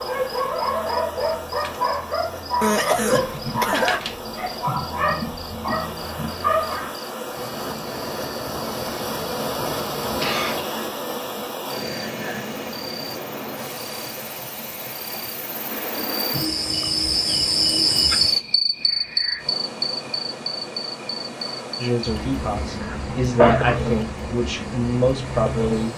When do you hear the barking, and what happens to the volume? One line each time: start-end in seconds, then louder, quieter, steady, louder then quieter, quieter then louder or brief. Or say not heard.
0.0-6.9 steady.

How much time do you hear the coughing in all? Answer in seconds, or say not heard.
3 s.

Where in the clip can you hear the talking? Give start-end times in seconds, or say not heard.
21.8-25.9.